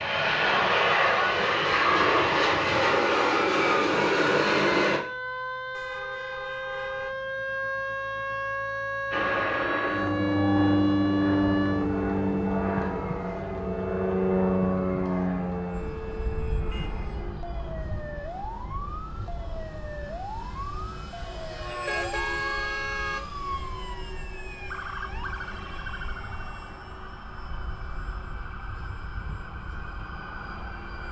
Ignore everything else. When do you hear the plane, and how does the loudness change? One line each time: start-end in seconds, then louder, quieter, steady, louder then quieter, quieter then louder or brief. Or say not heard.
0.0-5.0 steady
9.1-31.0 quieter.